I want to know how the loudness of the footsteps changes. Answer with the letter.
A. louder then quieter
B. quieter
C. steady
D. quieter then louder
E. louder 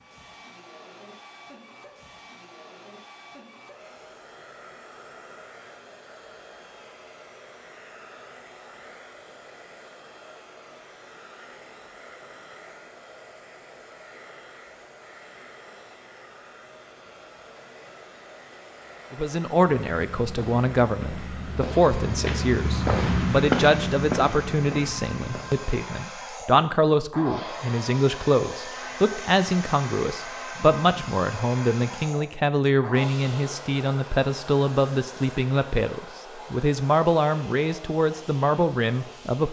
A.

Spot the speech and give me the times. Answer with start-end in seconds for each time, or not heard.
19.1-39.4.